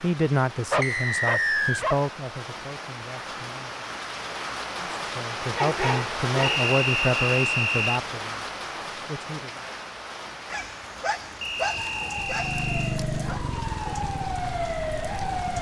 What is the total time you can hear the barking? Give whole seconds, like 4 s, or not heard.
5 s.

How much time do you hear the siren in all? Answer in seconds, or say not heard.
4 s.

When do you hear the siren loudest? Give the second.
15 s.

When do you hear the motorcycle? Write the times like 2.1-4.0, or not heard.
12.2-15.5.